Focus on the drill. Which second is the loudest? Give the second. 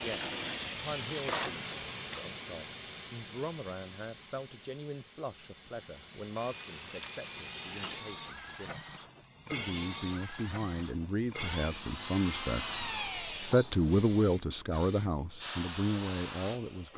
13 s.